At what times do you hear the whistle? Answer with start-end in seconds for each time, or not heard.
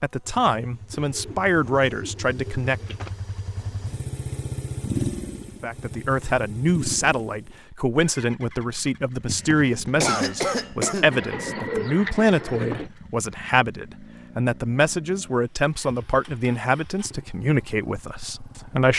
not heard.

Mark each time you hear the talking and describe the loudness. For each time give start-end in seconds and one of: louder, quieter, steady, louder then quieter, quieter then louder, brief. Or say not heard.
0.0-3.0 brief
5.6-18.9 steady.